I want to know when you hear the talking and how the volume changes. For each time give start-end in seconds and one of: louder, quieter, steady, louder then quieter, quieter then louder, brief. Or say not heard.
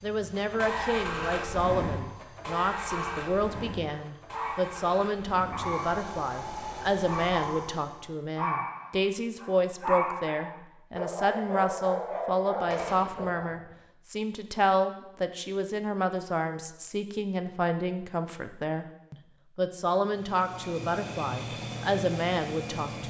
0.0-23.0 steady.